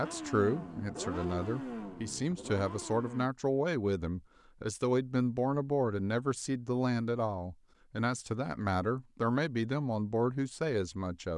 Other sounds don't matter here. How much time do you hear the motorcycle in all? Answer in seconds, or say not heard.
3 s.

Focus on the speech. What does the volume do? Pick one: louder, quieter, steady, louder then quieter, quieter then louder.
steady.